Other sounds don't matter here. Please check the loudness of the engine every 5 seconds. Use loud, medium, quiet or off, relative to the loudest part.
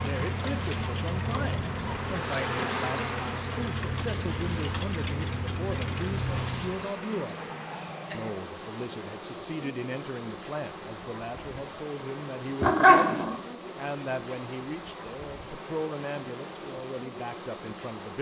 loud, loud, off, off.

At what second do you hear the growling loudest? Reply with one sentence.
The volume of the growling peaks at 13 seconds.